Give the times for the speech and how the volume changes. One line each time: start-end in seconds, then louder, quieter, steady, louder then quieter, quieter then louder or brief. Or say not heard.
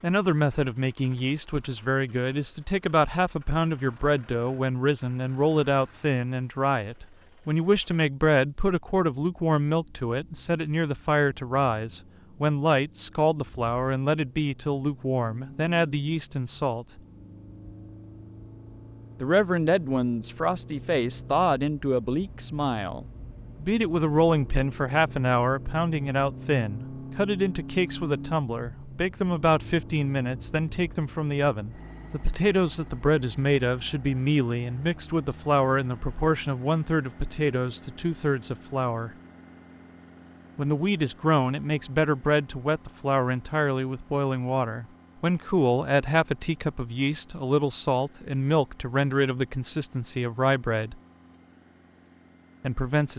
0.0-17.0 steady
19.2-39.1 steady
40.5-51.0 steady
52.6-53.1 brief.